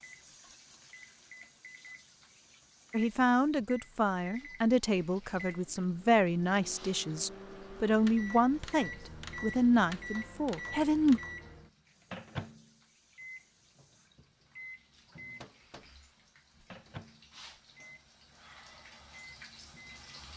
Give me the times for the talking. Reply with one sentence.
You can hear the talking from 2.9 to 11.2 s.